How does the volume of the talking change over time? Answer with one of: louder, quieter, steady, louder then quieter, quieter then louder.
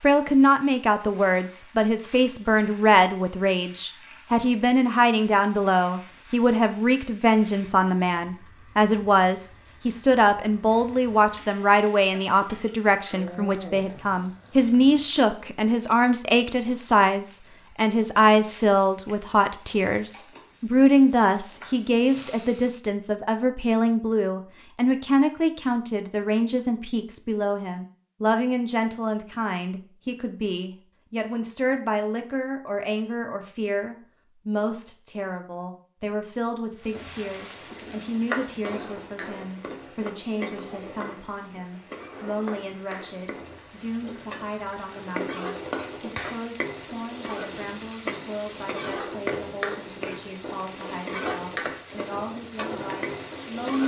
quieter.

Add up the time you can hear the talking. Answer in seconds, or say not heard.
54 s.